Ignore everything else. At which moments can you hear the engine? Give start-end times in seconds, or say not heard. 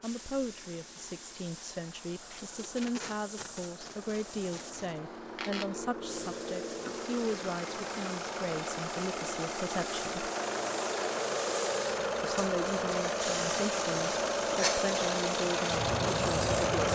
0.0-16.9.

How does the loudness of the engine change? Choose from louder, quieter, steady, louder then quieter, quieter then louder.
louder.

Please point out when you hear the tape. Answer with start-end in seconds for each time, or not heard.
2.3-5.0.